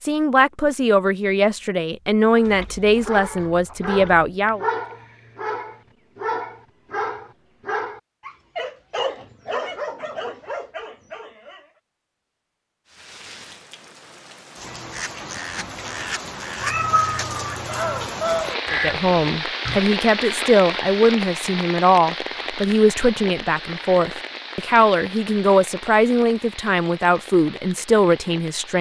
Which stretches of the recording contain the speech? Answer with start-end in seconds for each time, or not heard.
0.0-4.7, 18.7-28.7.